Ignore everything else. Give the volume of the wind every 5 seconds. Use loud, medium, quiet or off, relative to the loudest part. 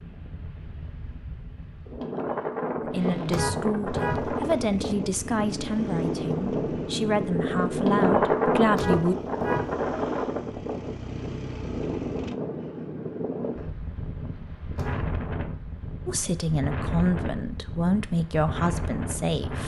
medium, loud, medium, medium.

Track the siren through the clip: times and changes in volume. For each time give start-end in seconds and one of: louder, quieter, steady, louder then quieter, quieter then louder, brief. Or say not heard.
not heard.